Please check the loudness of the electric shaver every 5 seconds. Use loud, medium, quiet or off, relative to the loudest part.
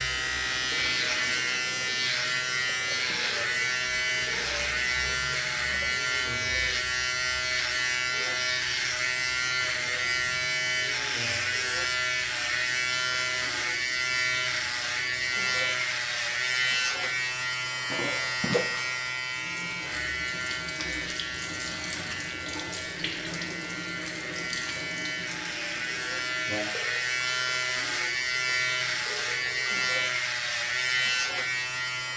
loud, loud, loud, loud, medium, loud, loud.